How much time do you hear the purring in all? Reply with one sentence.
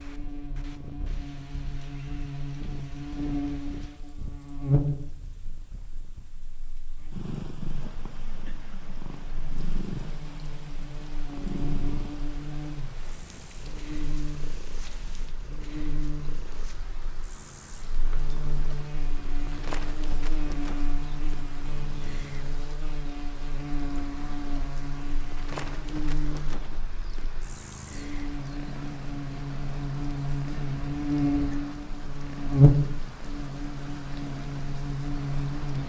The purring can be heard for 36 seconds in total.